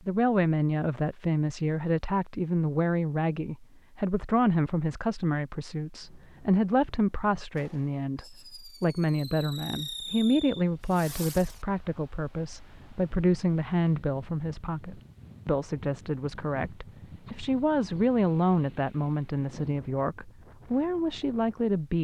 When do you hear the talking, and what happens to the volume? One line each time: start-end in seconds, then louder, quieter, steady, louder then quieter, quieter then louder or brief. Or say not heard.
0.1-22.0 steady.